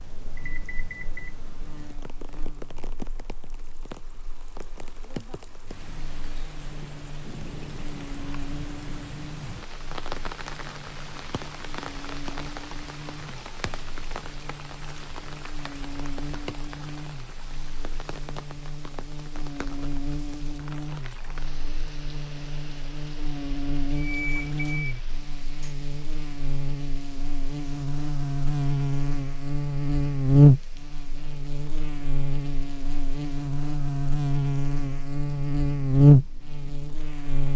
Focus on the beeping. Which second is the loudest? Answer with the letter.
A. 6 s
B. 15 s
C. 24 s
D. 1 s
C.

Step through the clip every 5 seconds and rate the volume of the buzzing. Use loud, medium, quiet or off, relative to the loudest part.
quiet, quiet, quiet, quiet, quiet, medium, loud, loud.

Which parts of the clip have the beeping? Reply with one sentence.
The beeping can be heard from 0.3 to 1.4 s and from 23.9 to 25.8 s.